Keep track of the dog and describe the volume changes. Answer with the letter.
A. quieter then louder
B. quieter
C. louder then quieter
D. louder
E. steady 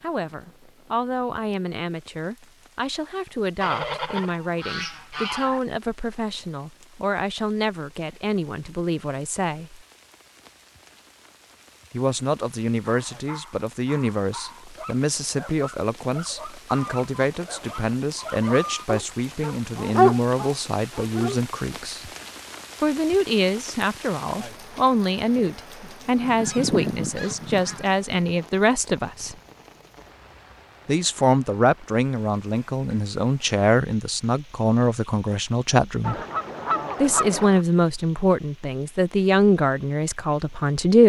D.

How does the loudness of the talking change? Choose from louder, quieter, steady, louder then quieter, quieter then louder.
louder.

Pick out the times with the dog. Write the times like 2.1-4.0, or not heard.
12.8-21.4.